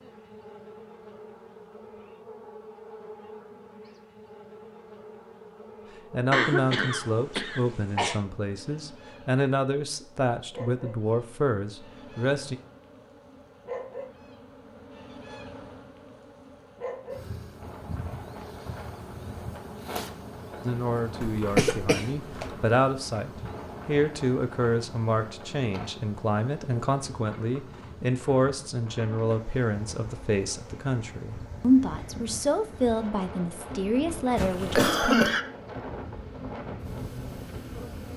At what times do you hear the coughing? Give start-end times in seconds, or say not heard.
6.3-8.2, 21.2-22.6, 34.4-35.5.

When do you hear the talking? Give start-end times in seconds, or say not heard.
6.1-12.6, 20.6-35.3.